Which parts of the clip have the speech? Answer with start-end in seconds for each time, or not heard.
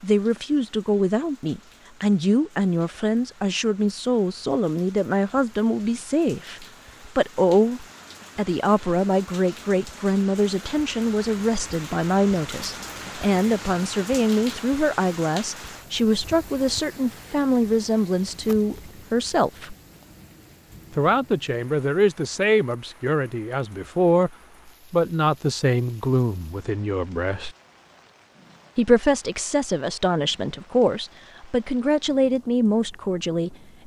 0.0-19.8, 20.9-24.3, 24.9-27.5, 28.8-33.5.